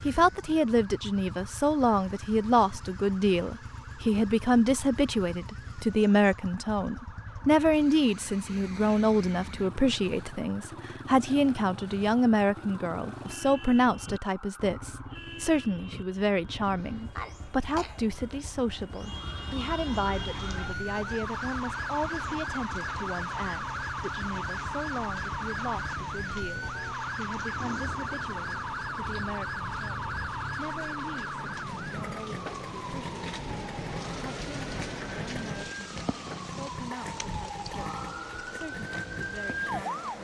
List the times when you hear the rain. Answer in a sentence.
The rain can be heard from 20.1 to 40.1 s.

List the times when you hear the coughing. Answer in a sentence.
You can hear the coughing from 16.8 to 18.0 s.